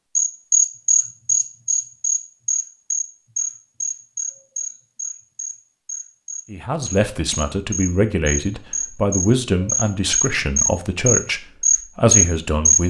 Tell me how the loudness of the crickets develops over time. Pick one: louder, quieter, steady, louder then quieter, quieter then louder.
quieter then louder.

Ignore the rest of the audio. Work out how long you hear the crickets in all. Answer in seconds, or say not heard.
13 s.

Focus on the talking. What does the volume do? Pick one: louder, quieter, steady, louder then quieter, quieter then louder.
steady.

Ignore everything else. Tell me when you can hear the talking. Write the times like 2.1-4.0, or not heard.
6.5-12.8.